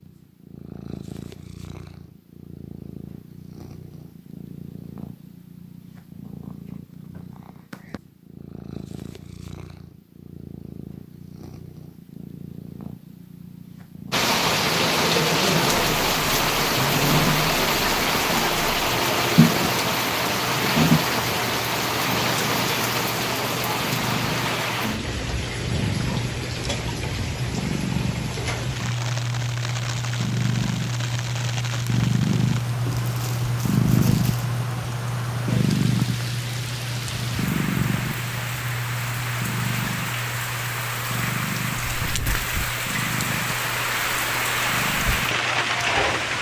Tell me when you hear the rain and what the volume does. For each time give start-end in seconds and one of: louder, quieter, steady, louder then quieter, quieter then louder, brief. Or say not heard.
14.1-46.3 quieter then louder.